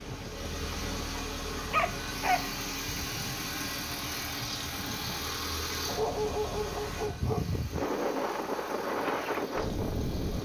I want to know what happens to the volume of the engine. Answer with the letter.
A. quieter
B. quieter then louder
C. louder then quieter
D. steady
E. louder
A.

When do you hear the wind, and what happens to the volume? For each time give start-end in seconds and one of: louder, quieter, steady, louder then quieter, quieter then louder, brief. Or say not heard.
0.0-10.4 louder.